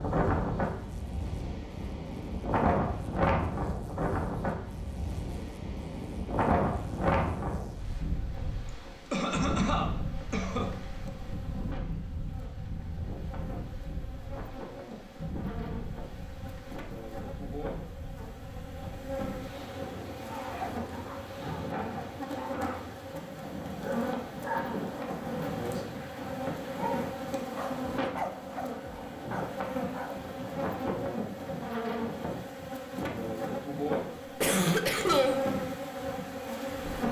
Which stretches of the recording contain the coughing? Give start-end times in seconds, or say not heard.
9.1-10.8, 34.4-35.4.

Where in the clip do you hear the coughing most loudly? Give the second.
35 s.